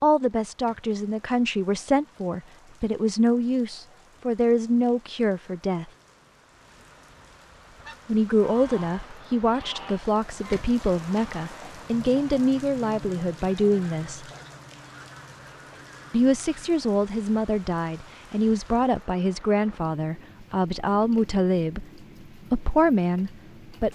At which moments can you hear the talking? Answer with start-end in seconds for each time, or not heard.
0.0-5.8, 8.1-14.2, 16.1-21.9, 22.5-23.9.